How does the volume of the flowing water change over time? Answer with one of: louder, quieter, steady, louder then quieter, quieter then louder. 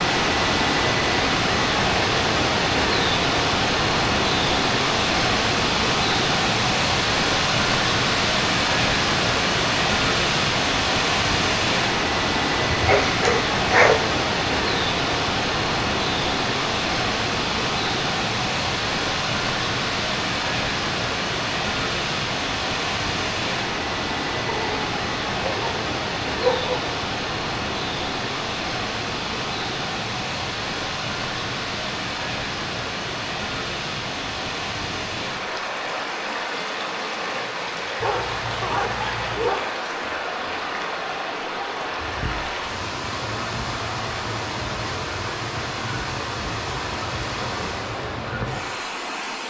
quieter.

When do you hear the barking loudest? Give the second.
14 s.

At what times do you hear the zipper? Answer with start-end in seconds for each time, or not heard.
not heard.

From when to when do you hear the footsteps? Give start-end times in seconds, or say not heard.
not heard.